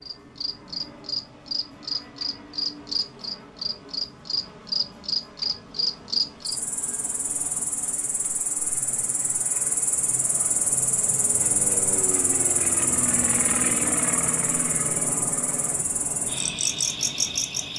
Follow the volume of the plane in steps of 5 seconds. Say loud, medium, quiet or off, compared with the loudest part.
quiet, quiet, loud, medium.